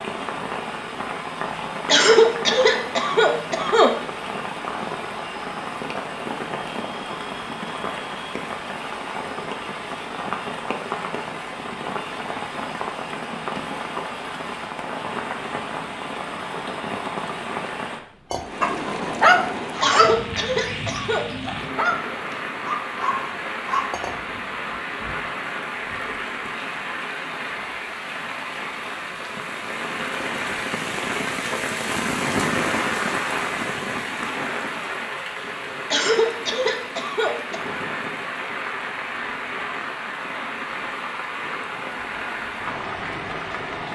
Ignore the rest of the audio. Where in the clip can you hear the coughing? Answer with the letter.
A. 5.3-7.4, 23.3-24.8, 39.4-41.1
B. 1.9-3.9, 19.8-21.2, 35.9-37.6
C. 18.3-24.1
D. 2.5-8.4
B.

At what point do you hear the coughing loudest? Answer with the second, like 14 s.
2 s.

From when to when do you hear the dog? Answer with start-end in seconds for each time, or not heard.
18.3-24.1.